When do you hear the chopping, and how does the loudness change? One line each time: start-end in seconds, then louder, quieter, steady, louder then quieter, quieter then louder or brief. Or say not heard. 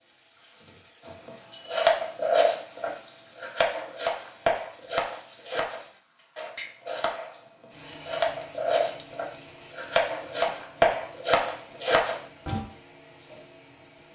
1.2-12.6 quieter then louder.